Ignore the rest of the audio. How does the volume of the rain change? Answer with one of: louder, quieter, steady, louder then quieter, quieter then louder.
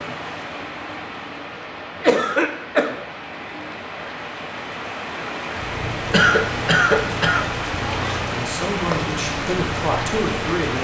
louder.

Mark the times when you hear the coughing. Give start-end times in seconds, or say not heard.
1.9-3.0, 6.1-7.5.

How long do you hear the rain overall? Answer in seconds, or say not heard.
11 s.